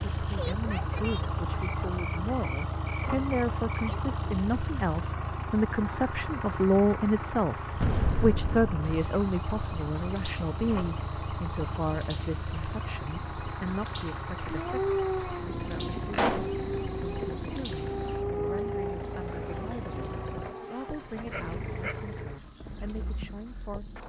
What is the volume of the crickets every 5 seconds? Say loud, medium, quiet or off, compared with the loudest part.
medium, medium, medium, medium, loud.